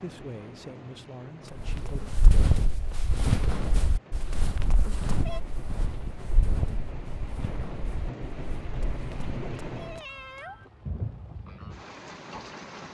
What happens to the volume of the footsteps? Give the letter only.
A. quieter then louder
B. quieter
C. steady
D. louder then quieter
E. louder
B.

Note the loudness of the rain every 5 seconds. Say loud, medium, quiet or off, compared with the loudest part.
medium, loud, loud.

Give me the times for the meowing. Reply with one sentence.
You can hear the meowing from 1.4 to 2.2 s, from 4.3 to 5.4 s and from 8.9 to 10.7 s.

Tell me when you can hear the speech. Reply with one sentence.
The speech can be heard from 0.0 to 2.0 s.